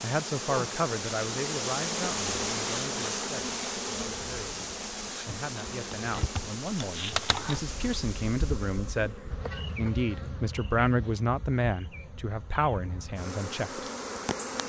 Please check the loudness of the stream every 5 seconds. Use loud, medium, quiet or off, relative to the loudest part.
loud, medium, off.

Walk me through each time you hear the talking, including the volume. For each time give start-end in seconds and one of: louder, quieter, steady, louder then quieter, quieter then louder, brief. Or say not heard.
0.0-13.8 quieter then louder.